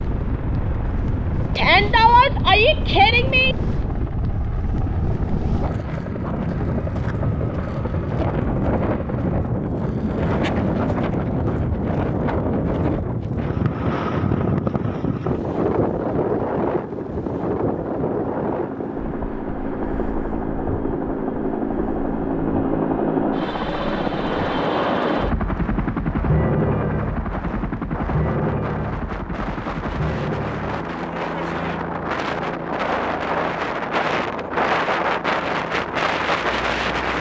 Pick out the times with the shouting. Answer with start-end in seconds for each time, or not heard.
1.6-3.5.